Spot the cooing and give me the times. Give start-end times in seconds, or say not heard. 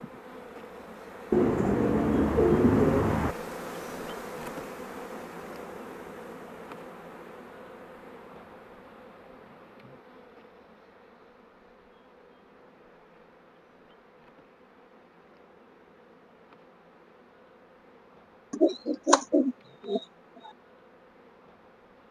1.3-3.4, 18.5-20.0.